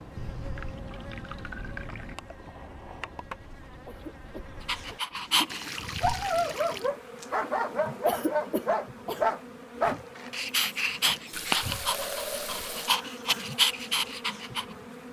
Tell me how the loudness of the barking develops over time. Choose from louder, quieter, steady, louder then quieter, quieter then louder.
steady.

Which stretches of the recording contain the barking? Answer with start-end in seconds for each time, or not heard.
4.7-14.7.